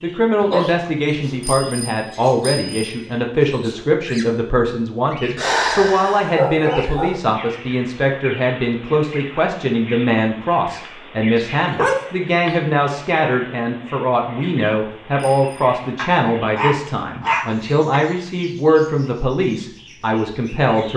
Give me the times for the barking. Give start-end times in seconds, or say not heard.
0.4-1.3, 5.3-7.2, 11.3-12.6, 15.9-18.0.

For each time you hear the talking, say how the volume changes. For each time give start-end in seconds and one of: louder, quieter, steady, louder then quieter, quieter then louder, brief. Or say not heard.
0.0-20.9 steady.